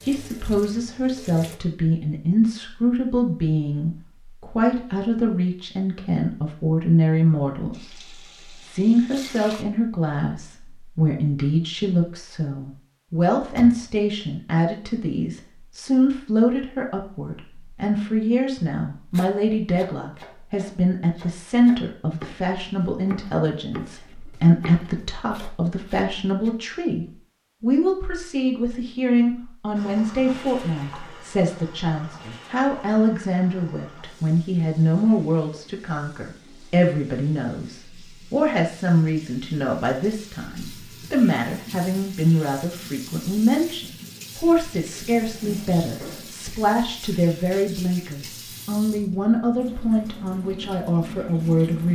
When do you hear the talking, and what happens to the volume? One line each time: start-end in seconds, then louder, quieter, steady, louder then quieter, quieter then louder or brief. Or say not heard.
0.1-51.9 steady.